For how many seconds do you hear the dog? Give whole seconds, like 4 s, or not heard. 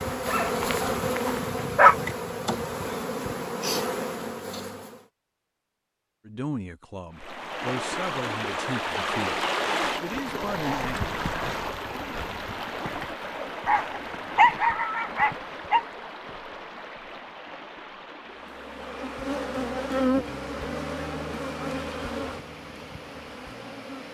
4 s.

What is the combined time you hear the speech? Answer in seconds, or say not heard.
5 s.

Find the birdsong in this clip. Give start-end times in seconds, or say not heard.
not heard.